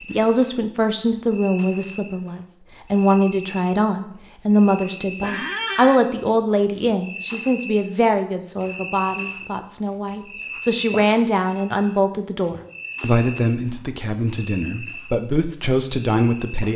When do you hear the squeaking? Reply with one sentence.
You can hear the squeaking from 5.2 to 6.0 s.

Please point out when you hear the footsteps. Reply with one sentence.
You can't hear the footsteps here.